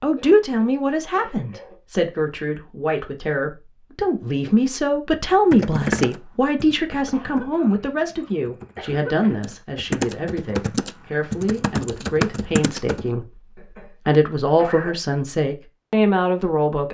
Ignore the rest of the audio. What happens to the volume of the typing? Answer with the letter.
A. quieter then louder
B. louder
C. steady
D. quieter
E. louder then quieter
A.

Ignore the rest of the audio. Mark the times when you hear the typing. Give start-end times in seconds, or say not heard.
5.5-13.1.